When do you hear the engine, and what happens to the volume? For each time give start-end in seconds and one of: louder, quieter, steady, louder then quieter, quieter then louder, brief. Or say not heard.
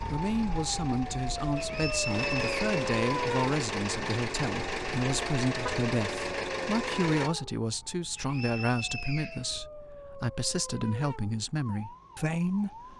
0.0-7.3 louder.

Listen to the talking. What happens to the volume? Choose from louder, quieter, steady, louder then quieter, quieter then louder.
steady.